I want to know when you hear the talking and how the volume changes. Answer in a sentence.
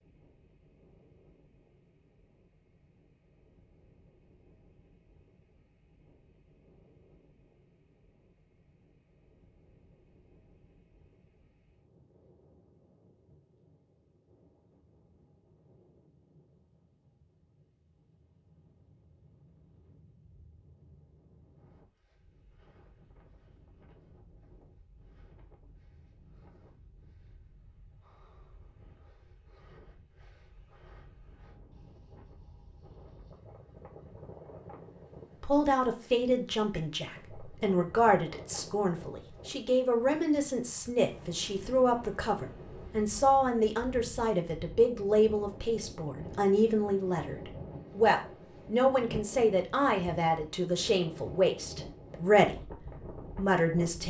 You can hear the talking from 35.4 to 54.0 s, at a steady volume.